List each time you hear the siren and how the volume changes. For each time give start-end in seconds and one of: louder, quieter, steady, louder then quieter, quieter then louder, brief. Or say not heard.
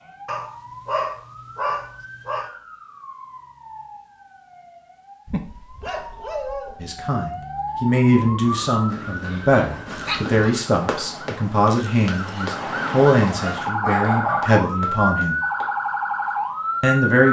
0.0-17.2 louder.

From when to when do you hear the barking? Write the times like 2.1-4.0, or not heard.
0.2-2.5, 5.2-6.8, 9.0-10.7, 13.4-14.6.